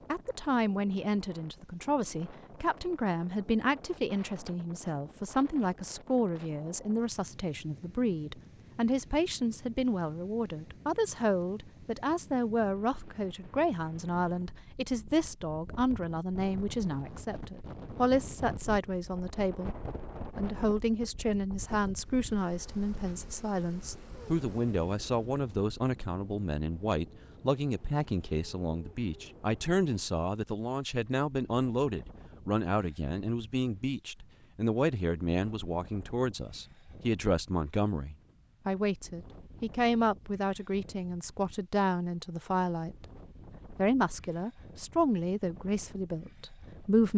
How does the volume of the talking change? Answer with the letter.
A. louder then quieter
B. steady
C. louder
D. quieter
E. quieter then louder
B.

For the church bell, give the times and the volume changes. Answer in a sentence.
The church bell can't be heard in this clip.